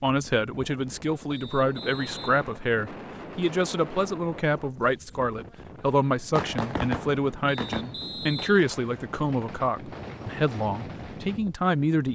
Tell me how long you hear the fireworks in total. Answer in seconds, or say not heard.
5 s.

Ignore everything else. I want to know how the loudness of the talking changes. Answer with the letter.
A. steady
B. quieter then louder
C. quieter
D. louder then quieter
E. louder
A.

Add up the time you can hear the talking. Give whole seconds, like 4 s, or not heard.
12 s.